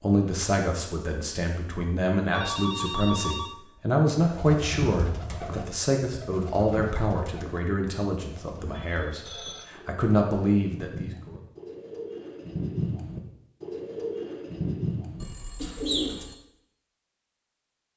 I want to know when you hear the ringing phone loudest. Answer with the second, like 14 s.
3 s.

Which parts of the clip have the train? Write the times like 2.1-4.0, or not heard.
not heard.